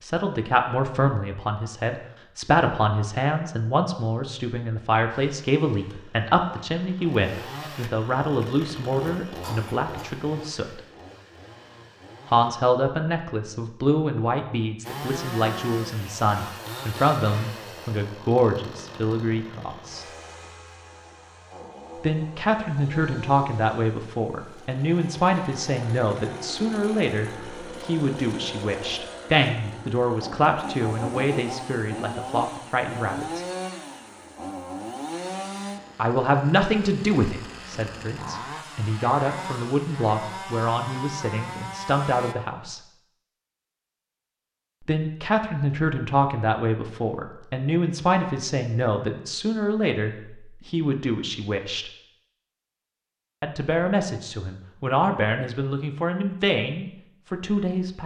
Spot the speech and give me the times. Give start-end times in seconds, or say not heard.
0.0-10.8, 12.2-20.1, 21.9-33.4, 36.0-42.8, 44.8-51.9, 53.4-58.0.